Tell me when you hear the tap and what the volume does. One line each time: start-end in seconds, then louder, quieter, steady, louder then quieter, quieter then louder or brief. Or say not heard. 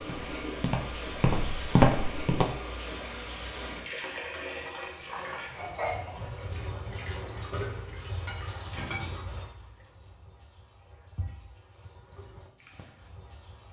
0.0-13.6 quieter.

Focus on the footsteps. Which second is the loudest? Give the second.
2 s.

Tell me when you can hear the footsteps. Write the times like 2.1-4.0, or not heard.
0.0-2.5.